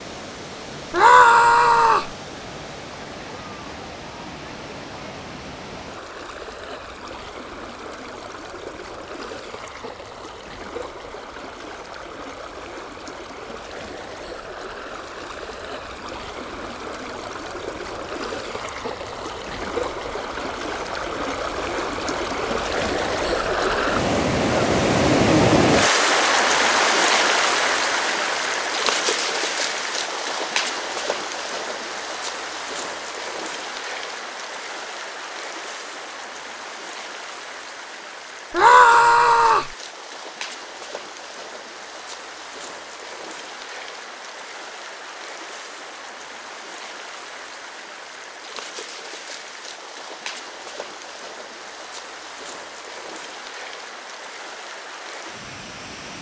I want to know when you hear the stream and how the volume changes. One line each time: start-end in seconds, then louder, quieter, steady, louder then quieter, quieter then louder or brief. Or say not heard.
0.0-56.1 louder then quieter.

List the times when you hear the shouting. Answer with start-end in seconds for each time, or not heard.
0.9-2.1, 38.5-39.7.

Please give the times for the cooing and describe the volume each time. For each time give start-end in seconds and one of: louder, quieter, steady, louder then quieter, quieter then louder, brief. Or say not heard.
not heard.